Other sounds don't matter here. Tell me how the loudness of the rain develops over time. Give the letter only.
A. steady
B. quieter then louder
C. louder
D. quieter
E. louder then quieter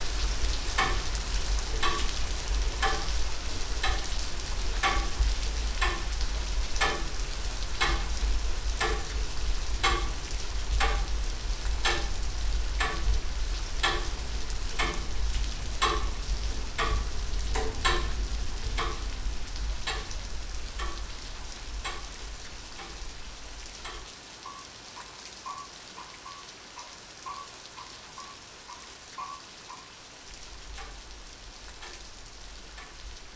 D.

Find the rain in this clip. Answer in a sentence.
The rain can be heard from 0.0 to 33.3 s.